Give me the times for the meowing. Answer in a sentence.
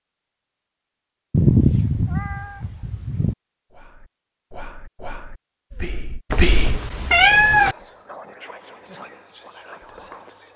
The meowing can be heard from 1.3 to 3.4 s and from 6.3 to 7.8 s.